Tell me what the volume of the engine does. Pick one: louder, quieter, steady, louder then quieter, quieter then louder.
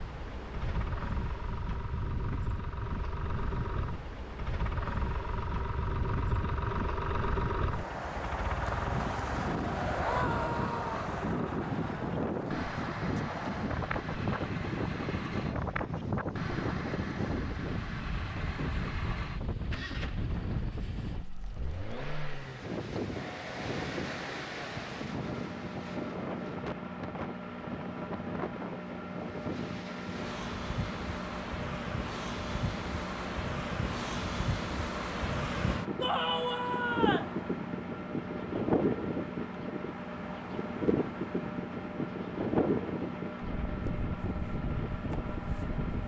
steady.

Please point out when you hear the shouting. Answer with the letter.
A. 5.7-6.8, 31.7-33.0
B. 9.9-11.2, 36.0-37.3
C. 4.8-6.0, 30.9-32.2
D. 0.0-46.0
B.